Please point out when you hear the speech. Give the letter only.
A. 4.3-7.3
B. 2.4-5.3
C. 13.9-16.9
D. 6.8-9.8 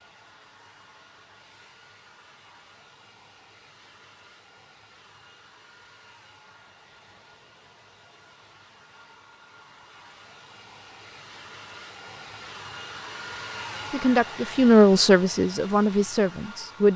C.